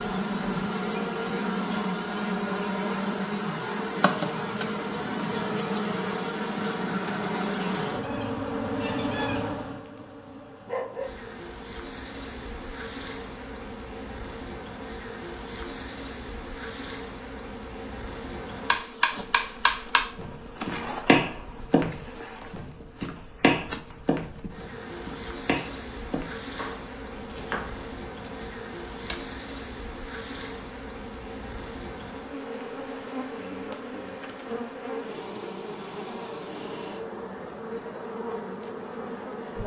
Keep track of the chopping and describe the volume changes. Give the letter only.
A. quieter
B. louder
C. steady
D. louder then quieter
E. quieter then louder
A.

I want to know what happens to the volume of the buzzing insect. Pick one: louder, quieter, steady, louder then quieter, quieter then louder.
quieter.